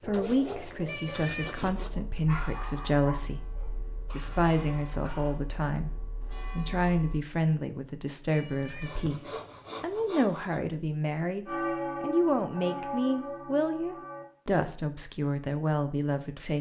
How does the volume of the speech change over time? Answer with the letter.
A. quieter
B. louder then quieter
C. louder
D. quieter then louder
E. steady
E.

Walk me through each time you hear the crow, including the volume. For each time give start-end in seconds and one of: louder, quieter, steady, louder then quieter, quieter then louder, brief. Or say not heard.
not heard.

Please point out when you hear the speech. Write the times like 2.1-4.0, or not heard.
0.1-16.5.